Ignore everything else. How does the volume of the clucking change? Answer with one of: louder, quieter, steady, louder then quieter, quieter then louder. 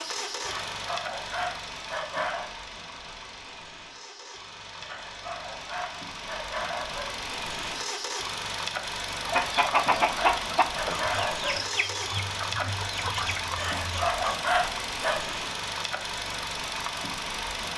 quieter.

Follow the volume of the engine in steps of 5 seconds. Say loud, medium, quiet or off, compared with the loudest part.
medium, loud, loud, loud.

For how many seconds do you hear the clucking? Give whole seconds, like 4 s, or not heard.
5 s.